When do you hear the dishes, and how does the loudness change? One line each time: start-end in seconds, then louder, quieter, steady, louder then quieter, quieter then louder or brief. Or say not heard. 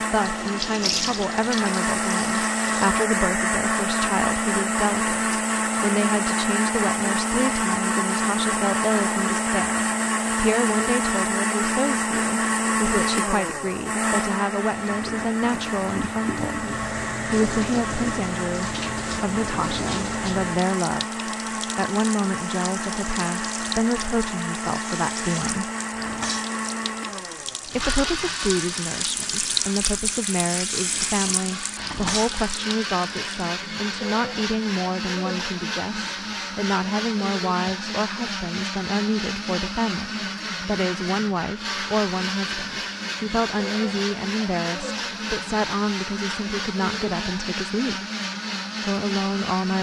not heard.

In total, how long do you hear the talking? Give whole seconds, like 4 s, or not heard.
46 s.